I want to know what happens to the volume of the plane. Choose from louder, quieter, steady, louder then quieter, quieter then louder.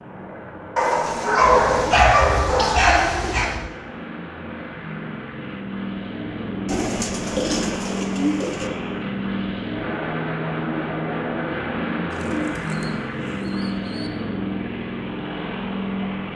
louder.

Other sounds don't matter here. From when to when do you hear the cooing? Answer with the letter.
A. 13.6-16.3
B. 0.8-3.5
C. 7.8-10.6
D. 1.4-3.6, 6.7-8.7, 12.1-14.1
D.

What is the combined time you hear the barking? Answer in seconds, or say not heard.
3 s.